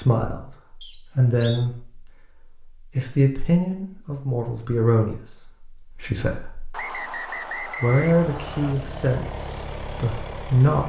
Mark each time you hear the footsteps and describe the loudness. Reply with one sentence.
You can't hear the footsteps here.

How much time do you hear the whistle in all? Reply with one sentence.
You can hear the whistle for 3 seconds altogether.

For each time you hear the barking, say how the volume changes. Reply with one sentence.
The barking can't be heard in this clip.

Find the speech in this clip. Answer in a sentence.
The speech can be heard from 0.0 to 2.0 s, from 2.8 to 6.8 s and from 7.6 to 10.8 s.